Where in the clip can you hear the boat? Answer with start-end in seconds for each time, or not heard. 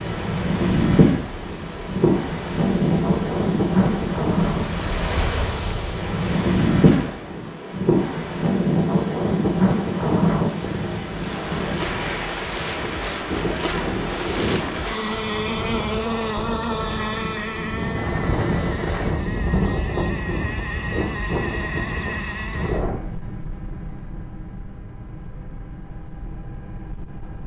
0.0-7.4, 11.1-27.4.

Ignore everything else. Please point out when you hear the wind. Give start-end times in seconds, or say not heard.
0.0-23.0.